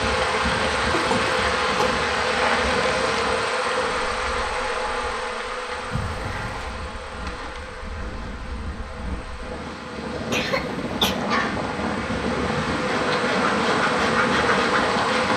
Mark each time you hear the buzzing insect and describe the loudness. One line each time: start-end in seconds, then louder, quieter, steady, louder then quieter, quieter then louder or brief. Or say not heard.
0.0-15.3 quieter then louder.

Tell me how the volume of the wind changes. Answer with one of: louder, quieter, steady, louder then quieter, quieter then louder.
quieter then louder.